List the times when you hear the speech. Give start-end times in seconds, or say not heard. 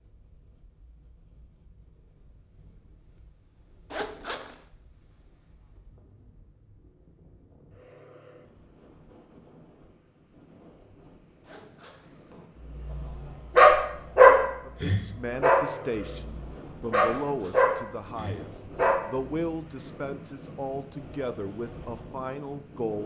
14.7-23.0.